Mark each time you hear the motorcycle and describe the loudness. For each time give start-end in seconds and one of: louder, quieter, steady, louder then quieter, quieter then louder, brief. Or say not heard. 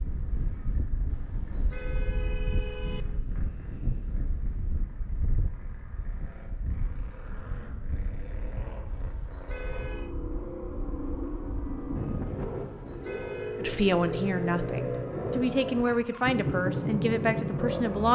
0.0-18.1 louder.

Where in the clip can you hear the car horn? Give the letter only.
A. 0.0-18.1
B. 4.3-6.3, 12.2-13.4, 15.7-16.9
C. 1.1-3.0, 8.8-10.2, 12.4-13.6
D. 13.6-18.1
C.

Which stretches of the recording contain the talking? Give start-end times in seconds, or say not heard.
13.6-18.1.